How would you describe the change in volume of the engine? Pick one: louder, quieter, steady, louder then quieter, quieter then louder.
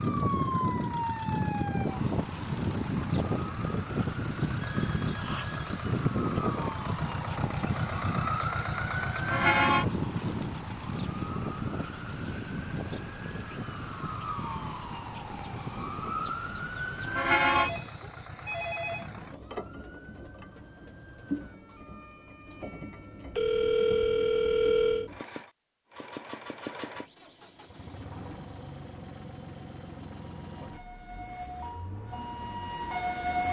quieter.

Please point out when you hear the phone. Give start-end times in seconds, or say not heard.
4.6-5.8, 17.6-19.1, 23.4-25.1.